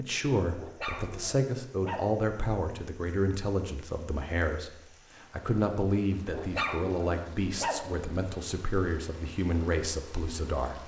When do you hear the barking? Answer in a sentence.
You can hear the barking from 0.6 to 2.2 s and from 6.3 to 8.1 s.